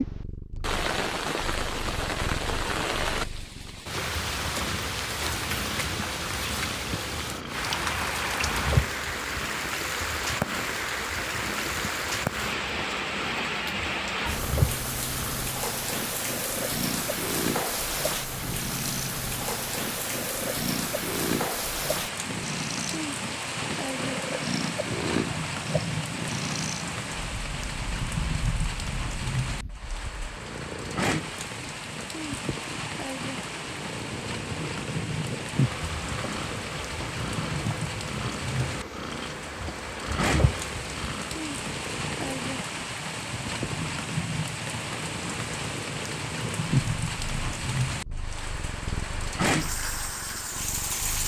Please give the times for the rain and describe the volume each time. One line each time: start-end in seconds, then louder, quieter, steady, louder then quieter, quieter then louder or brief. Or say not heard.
0.0-51.2 steady.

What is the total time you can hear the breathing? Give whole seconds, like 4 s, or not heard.
not heard.